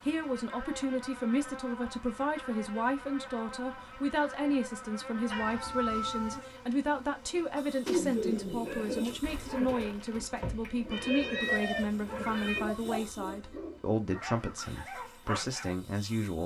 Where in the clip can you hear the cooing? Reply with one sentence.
The cooing can be heard from 7.8 to 13.0 s.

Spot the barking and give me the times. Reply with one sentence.
The barking can be heard from 8.7 to 15.8 s.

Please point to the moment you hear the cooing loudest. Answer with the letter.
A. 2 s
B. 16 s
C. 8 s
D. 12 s
C.